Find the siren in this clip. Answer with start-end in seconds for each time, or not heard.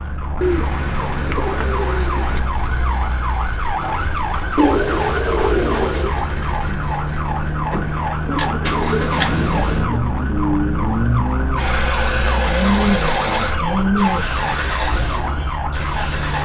0.0-16.3.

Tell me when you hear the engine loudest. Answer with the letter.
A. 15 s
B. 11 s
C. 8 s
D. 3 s
B.